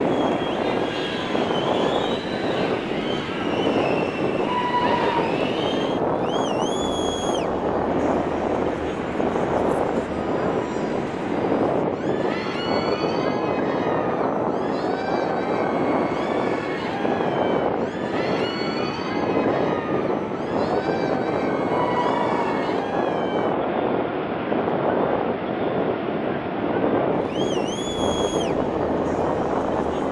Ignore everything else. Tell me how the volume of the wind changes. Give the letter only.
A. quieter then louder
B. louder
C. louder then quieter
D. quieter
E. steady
E.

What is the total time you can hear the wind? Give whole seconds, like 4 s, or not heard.
30 s.